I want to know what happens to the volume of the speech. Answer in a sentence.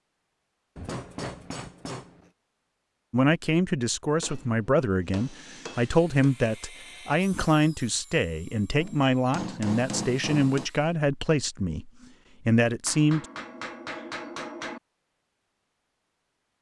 The loudness of the speech stays about the same.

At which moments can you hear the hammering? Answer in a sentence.
You can hear the hammering from 0.8 to 2.3 s, from 4.2 to 6.3 s, from 8.8 to 10.7 s and from 12.8 to 14.8 s.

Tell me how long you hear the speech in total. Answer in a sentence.
The speech can be heard for 10 seconds in total.